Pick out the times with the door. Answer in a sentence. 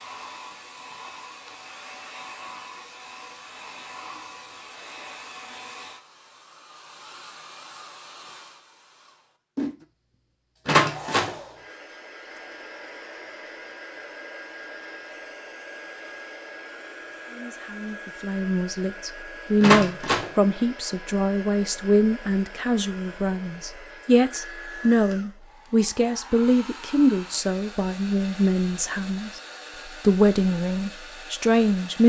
The door can be heard from 10.7 to 11.3 s and from 19.6 to 20.3 s.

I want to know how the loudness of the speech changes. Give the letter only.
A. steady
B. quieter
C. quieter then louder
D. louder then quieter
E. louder
A.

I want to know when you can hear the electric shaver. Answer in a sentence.
You can't hear the electric shaver here.